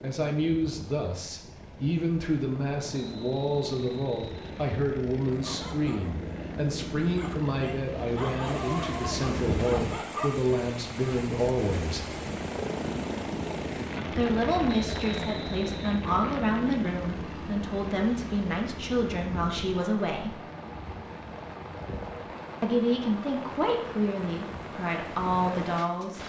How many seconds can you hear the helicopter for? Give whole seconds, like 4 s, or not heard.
26 s.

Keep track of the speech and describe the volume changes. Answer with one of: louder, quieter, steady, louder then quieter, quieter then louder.
steady.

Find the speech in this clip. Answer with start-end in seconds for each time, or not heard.
0.0-12.0, 14.1-20.4, 22.6-26.2.